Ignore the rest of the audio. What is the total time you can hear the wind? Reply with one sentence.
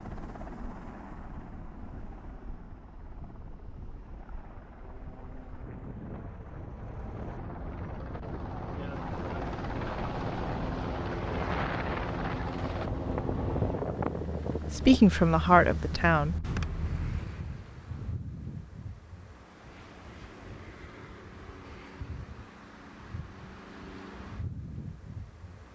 You can hear the wind for 26 seconds altogether.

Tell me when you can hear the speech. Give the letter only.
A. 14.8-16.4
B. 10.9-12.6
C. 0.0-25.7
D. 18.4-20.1
A.